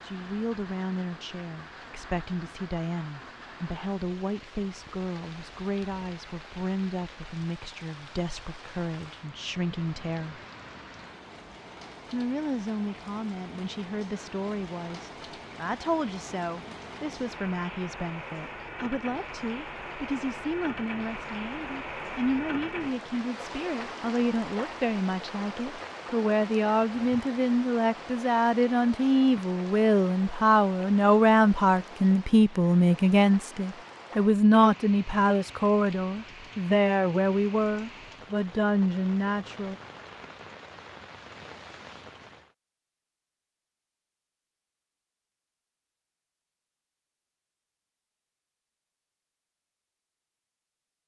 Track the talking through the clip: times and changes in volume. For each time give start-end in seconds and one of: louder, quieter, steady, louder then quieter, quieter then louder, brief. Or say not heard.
0.0-10.4 steady
12.1-39.8 louder.